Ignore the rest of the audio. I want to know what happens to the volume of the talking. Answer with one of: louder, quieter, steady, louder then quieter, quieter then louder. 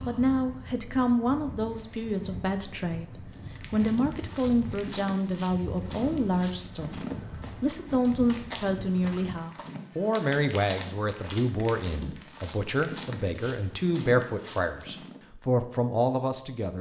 steady.